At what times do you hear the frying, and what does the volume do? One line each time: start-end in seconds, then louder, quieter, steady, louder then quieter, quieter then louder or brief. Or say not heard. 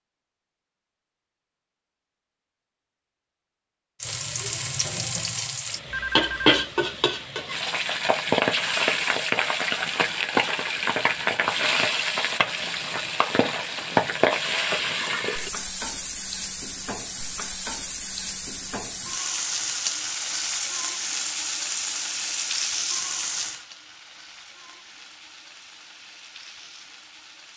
4.0-27.5 quieter.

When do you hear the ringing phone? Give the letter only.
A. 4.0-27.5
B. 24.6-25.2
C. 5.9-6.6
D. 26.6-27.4
C.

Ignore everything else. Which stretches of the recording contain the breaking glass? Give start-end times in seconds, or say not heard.
not heard.